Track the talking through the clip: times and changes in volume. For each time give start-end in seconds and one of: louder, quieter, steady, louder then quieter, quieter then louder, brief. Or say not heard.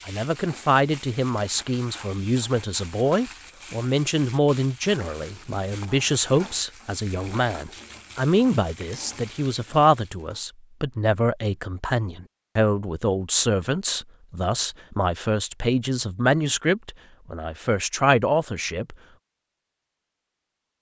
0.1-18.9 steady.